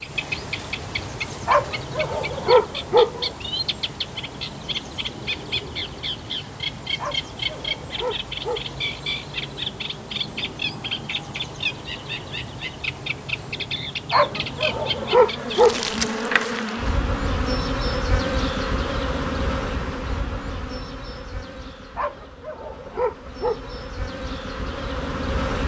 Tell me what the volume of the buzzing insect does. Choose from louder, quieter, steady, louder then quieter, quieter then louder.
quieter then louder.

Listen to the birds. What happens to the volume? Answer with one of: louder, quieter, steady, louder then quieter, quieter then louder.
steady.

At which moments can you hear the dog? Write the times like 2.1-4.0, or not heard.
1.4-3.3, 7.0-8.8, 14.1-15.8, 21.9-23.8.